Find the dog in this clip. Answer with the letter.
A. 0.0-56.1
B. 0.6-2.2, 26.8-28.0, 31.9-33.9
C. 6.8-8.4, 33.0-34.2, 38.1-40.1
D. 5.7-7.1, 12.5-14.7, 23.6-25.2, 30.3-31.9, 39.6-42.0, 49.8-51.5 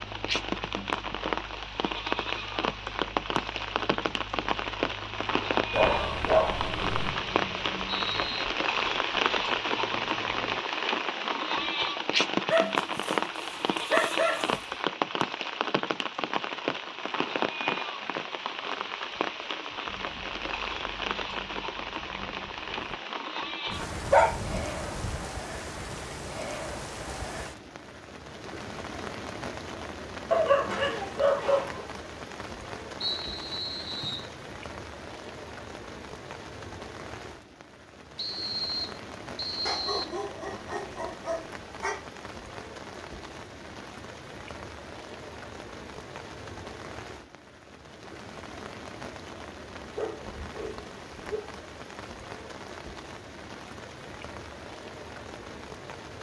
D.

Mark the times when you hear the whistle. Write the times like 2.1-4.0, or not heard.
6.8-8.4, 33.0-34.2, 38.1-40.1.